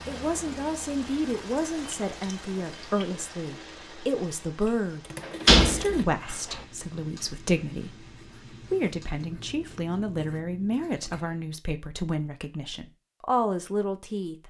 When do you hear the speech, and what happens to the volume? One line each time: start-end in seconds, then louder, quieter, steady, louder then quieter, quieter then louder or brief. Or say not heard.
0.1-14.4 steady.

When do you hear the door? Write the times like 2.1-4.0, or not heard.
5.2-6.5.